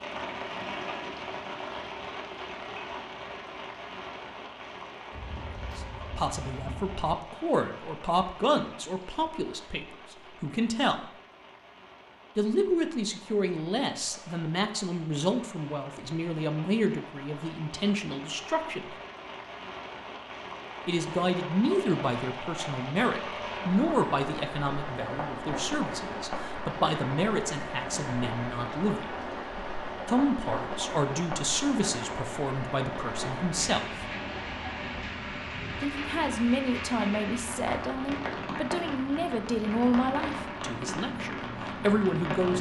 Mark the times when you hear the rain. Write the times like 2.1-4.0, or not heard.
0.0-42.5.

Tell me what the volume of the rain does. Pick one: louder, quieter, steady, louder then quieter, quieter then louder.
quieter then louder.